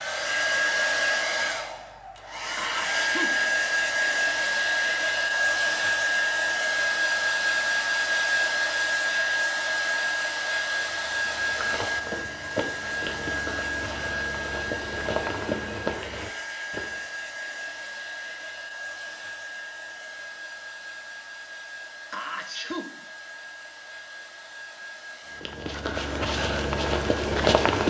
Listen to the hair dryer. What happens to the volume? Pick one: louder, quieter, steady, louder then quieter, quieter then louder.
quieter.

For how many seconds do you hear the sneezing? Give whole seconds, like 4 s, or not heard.
2 s.